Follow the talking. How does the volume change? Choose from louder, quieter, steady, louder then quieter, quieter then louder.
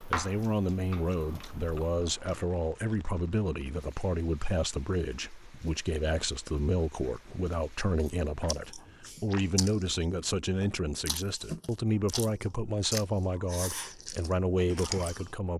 steady.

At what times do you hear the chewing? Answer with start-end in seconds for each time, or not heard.
0.0-2.5, 8.0-15.3.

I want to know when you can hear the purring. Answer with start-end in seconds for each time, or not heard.
not heard.